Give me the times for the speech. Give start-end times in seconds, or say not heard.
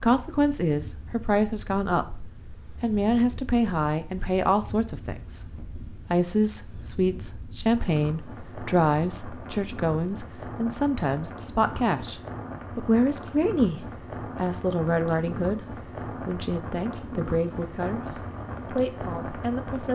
0.0-15.7, 16.2-19.8.